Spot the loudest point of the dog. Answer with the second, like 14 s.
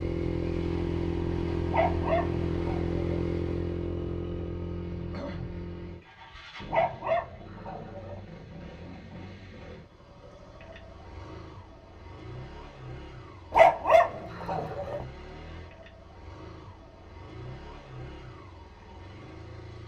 14 s.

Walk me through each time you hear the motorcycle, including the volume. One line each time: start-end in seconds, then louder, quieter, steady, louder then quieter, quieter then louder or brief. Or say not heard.
0.0-19.8 quieter.